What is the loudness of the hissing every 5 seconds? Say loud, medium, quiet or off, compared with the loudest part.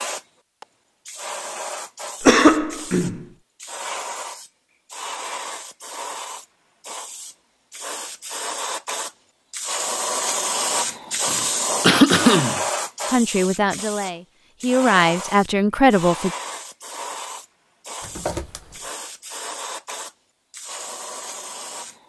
medium, medium, loud, medium, medium.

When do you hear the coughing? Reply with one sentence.
The coughing can be heard from 2.2 to 3.2 s, from 11.3 to 12.6 s and from 18.0 to 18.8 s.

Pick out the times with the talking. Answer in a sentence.
The talking can be heard from 13.1 to 16.3 s.